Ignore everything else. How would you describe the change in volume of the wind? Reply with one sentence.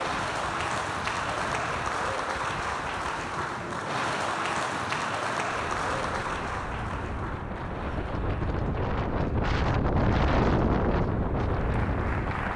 The loudness of the wind goes up.